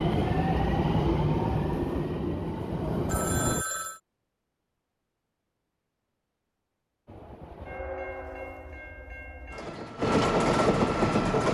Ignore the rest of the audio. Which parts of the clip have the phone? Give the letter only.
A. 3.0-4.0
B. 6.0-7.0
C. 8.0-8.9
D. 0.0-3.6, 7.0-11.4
A.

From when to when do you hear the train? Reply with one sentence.
You can hear the train from 0.0 to 3.6 s and from 7.0 to 11.4 s.